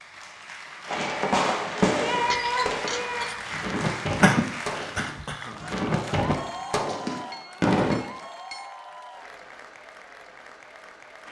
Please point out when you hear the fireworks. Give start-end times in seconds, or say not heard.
0.8-8.0.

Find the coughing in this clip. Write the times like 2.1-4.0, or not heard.
4.2-5.5.